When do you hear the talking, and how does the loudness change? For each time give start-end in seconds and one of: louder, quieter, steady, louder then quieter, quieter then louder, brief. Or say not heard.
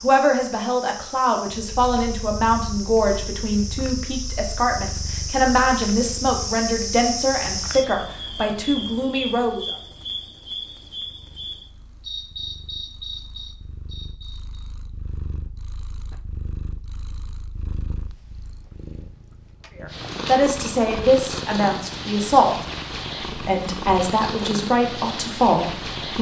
0.0-9.7 steady
19.8-22.6 brief
23.4-26.1 brief.